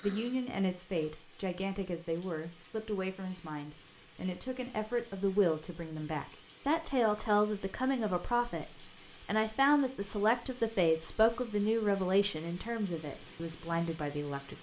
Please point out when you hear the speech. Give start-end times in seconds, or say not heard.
0.0-14.5.